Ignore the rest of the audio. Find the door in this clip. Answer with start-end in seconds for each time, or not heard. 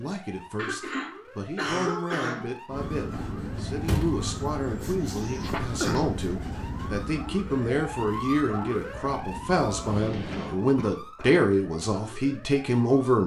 3.5-4.2.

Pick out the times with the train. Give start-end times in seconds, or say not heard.
2.7-10.6.